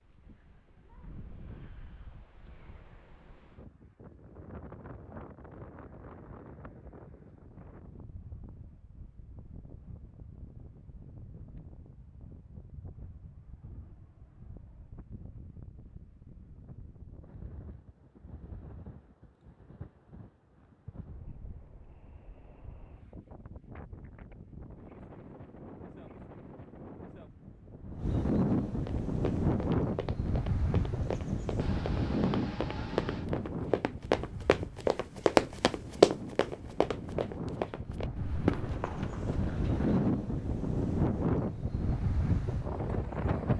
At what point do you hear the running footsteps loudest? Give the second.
36 s.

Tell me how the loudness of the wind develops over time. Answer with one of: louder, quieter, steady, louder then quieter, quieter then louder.
louder.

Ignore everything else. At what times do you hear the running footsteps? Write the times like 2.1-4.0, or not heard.
28.9-40.1.